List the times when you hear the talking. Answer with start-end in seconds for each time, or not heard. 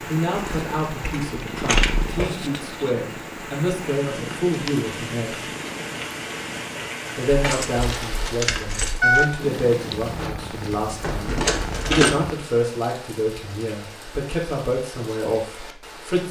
0.0-5.5, 7.2-16.2.